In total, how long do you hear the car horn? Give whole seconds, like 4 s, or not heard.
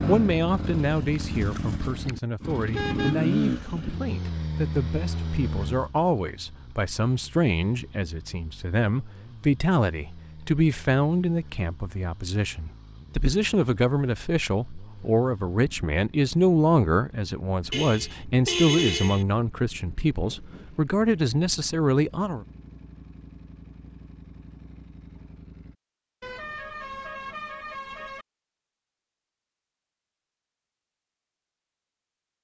5 s.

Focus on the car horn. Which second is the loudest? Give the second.
19 s.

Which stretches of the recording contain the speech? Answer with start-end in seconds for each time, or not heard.
0.1-22.4.